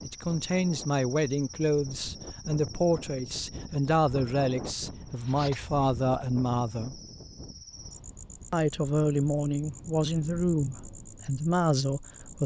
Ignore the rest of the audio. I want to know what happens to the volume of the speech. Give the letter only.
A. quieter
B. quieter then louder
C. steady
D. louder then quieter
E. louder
C.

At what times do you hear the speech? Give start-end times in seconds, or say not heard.
0.0-7.0, 8.5-12.4.